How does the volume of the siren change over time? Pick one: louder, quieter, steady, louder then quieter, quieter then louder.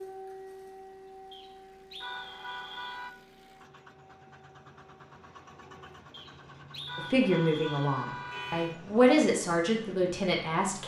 quieter.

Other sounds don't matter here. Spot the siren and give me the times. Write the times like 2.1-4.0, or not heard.
0.0-5.8.